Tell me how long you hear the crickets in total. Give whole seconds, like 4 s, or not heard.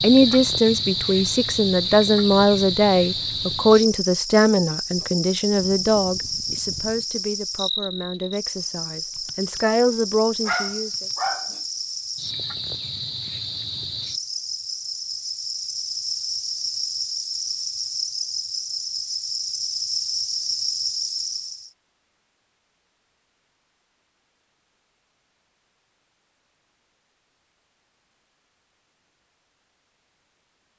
22 s.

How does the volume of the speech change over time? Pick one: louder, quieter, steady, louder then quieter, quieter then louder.
quieter then louder.